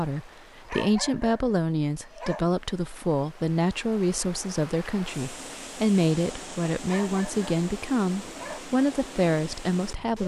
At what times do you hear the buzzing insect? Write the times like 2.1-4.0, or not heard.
not heard.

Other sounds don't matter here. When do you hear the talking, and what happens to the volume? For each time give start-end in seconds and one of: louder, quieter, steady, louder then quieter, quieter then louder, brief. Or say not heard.
0.0-10.2 steady.